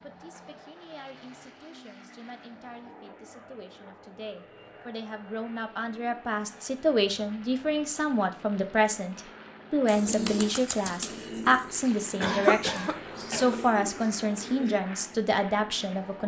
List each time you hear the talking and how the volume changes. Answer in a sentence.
You can hear the talking from 0.0 to 16.2 s, getting louder.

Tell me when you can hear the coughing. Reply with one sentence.
The coughing can be heard from 12.2 to 13.6 s.